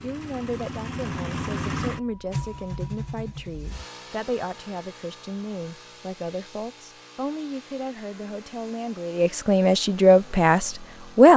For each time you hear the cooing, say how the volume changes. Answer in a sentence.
You can't hear the cooing here.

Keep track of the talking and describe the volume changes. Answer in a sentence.
The volume of the talking goes up.